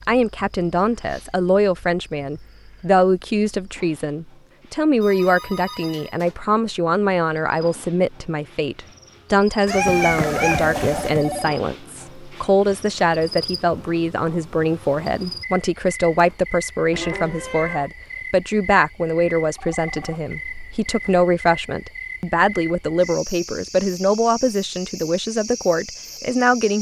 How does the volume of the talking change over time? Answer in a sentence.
The loudness of the talking stays about the same.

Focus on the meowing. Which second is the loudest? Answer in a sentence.
The loudest moment of the meowing is at 10 seconds.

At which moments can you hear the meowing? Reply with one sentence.
You can hear the meowing from 9.7 to 11.1 s and from 16.9 to 17.9 s.